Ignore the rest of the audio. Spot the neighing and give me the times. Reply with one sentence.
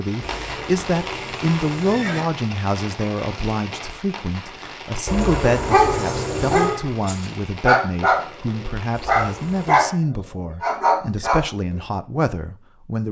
The neighing can be heard from 0.2 to 2.2 s, from 5.0 to 6.8 s and from 8.9 to 9.8 s.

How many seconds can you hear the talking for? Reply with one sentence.
The talking can be heard for 13 seconds in total.